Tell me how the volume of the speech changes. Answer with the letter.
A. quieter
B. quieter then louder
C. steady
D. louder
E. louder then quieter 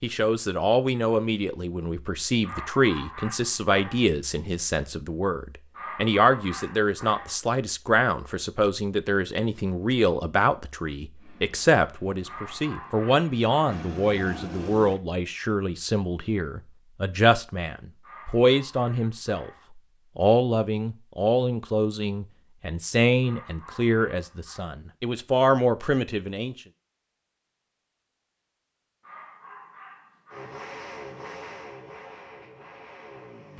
C.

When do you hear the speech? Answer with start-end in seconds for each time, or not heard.
0.0-19.5, 20.1-26.6.